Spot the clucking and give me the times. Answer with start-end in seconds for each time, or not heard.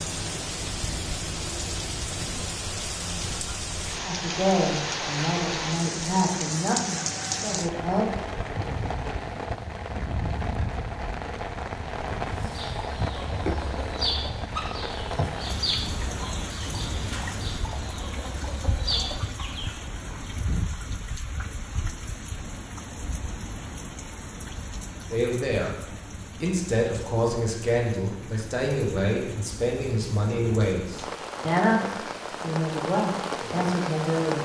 12.2-19.9.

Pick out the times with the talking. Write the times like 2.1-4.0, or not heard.
4.0-8.1, 25.1-34.3.